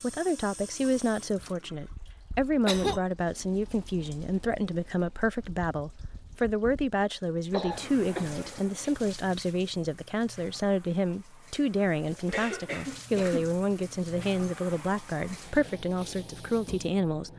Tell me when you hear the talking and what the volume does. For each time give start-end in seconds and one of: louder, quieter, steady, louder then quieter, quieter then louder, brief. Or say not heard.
0.0-17.3 steady.